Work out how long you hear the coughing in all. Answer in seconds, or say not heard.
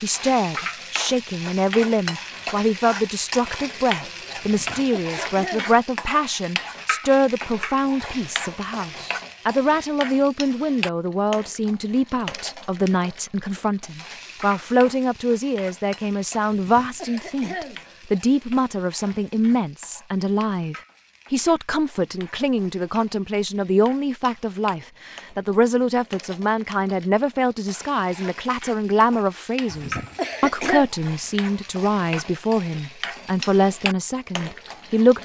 4 s.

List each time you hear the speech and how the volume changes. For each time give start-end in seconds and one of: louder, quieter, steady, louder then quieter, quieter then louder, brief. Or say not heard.
0.0-35.2 steady.